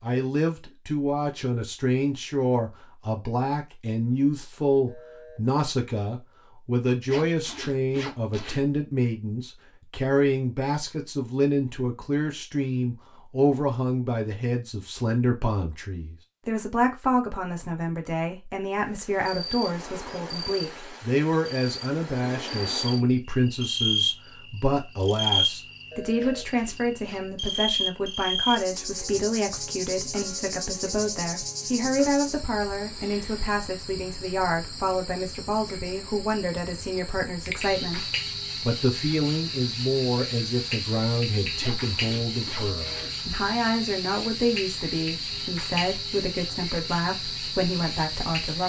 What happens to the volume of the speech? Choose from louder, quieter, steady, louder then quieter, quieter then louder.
steady.